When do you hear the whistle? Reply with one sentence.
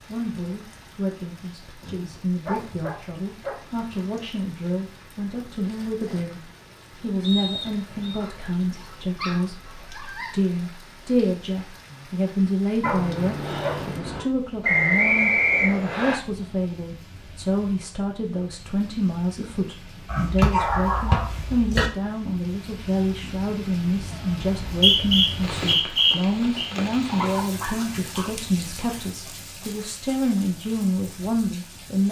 The whistle can be heard from 7.2 to 8.2 s, from 14.6 to 16.1 s and from 24.4 to 26.7 s.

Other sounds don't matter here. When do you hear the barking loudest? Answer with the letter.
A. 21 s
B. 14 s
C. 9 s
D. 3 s
A.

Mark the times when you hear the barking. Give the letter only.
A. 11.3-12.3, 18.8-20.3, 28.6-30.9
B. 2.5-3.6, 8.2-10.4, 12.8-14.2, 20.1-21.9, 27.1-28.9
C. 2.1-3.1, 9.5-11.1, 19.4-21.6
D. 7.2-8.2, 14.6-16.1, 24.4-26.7
B.